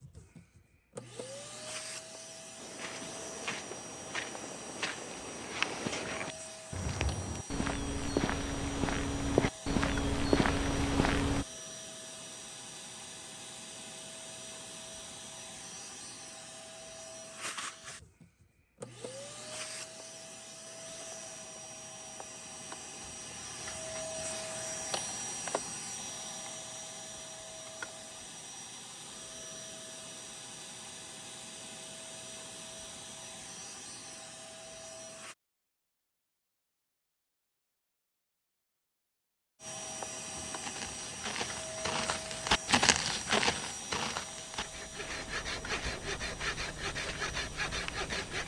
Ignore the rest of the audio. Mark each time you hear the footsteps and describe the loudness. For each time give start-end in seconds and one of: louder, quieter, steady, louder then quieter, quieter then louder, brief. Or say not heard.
2.5-11.4 louder
40.3-48.4 louder then quieter.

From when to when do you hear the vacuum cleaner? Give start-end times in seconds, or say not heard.
0.0-35.4, 39.6-48.4.